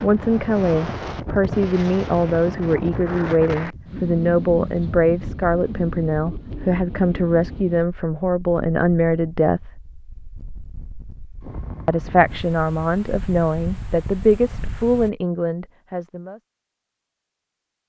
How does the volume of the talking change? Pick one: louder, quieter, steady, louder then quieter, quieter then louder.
steady.